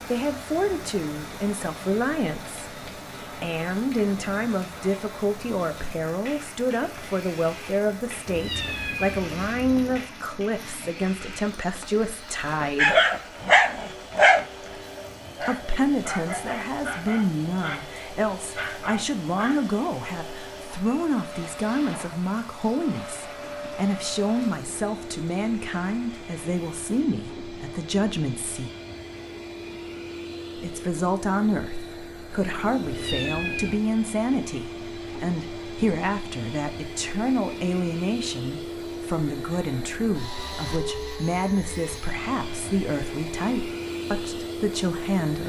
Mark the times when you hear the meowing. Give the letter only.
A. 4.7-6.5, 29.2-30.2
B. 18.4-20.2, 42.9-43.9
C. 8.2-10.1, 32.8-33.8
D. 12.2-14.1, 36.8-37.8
C.